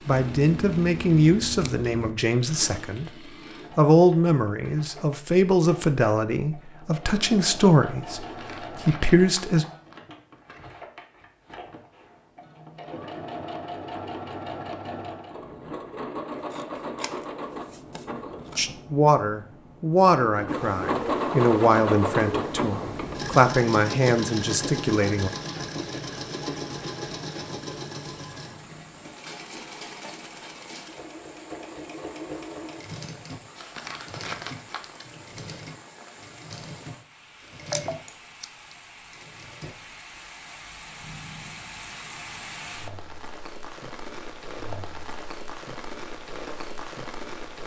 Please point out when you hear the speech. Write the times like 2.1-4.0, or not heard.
0.1-9.7, 18.6-25.3.